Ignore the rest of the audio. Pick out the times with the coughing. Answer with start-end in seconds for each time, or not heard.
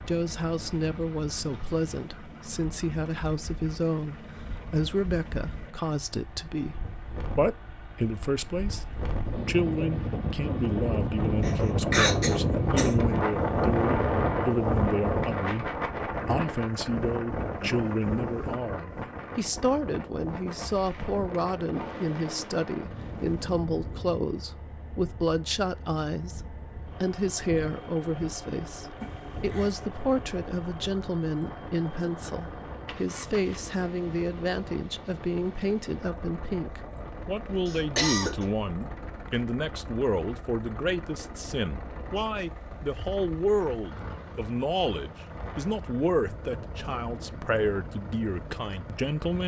11.4-13.0, 29.0-29.8, 37.6-38.5.